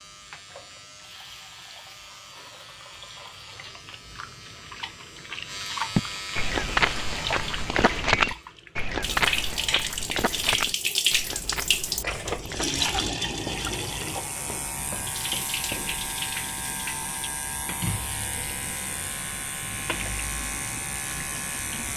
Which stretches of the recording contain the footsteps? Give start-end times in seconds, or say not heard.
6.0-16.1.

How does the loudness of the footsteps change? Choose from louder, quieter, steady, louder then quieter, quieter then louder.
quieter.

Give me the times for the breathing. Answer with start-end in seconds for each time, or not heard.
not heard.